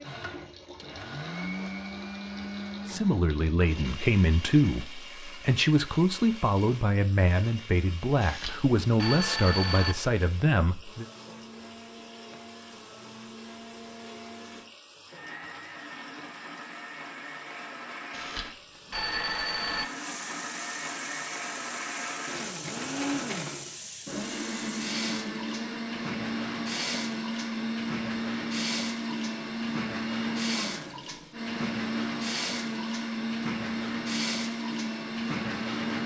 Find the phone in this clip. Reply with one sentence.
You can hear the phone from 8.2 to 9.9 s and from 18.1 to 19.9 s.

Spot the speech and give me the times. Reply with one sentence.
You can hear the speech from 2.9 to 11.1 s.